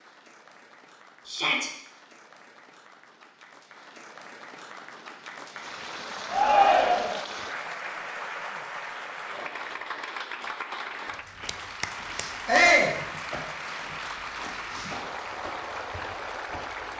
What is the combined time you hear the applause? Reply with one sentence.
You can hear the applause for 17 seconds altogether.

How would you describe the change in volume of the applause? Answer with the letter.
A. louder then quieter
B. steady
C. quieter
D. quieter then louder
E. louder
E.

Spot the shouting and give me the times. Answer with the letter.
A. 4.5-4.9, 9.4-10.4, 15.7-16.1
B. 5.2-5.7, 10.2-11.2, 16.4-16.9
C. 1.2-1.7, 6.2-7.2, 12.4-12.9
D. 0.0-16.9
C.